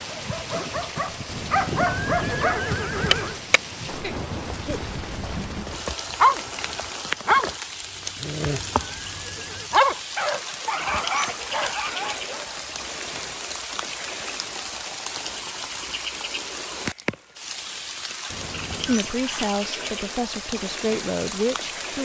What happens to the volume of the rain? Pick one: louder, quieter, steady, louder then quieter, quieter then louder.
steady.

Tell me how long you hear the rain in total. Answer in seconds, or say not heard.
22 s.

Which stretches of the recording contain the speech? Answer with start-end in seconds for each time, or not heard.
18.8-22.0.